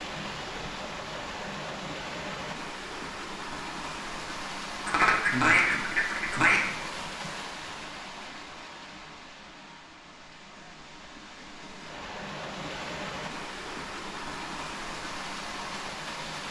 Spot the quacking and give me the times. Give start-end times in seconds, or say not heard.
4.8-6.7.